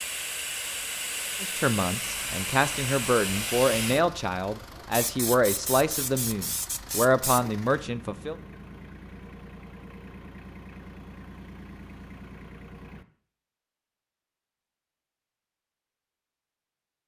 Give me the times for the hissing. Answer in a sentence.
The hissing can be heard from 0.0 to 7.5 s.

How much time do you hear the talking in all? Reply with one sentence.
The talking can be heard for 7 seconds in total.